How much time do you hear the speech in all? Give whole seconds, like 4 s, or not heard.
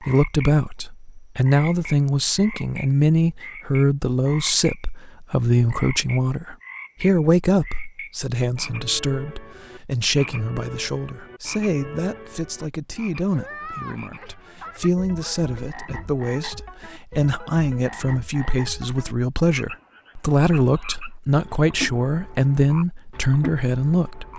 24 s.